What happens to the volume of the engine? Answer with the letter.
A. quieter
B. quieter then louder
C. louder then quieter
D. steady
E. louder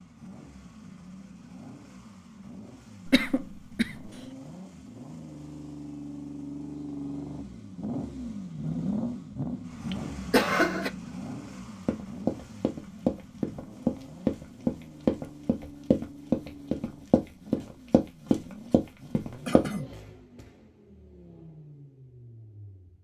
C.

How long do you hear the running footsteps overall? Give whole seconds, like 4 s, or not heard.
8 s.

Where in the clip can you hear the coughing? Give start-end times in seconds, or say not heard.
3.0-3.9, 9.9-10.9, 19.4-19.9.